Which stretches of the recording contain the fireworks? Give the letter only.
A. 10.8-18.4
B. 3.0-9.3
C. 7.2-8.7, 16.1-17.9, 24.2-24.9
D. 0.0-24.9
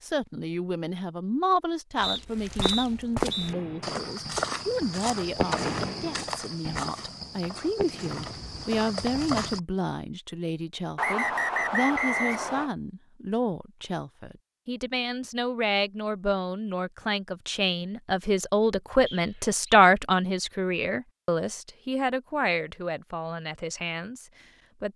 B.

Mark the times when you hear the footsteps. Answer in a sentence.
The footsteps can be heard from 1.9 to 9.6 s.